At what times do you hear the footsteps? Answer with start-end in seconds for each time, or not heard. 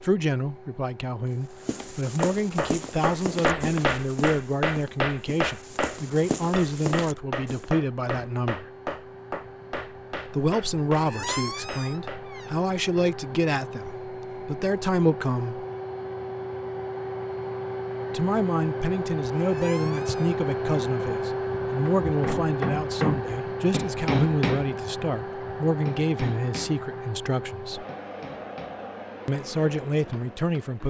1.6-7.7.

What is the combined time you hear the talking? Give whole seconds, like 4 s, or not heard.
25 s.